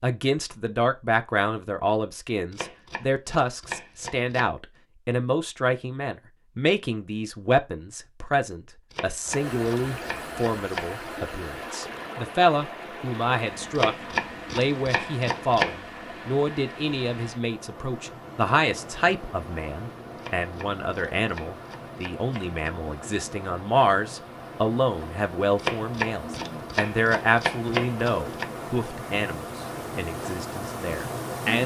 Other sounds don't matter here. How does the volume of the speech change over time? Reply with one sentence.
The volume of the speech stays about the same.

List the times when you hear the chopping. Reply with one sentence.
You can hear the chopping from 2.5 to 4.5 s, from 8.9 to 11.0 s, from 13.8 to 15.8 s, from 20.1 to 22.6 s and from 25.6 to 28.5 s.